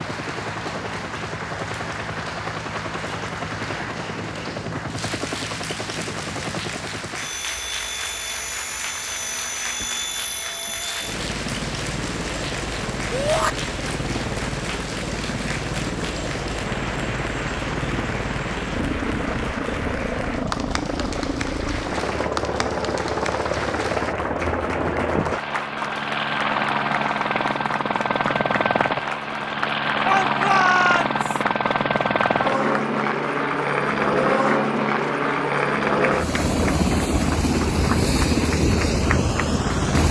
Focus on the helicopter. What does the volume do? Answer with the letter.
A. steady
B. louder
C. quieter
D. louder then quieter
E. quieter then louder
B.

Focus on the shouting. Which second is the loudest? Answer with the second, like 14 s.
31 s.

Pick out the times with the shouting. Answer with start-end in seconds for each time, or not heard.
13.1-13.6, 30.0-31.4.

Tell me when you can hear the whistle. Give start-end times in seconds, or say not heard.
not heard.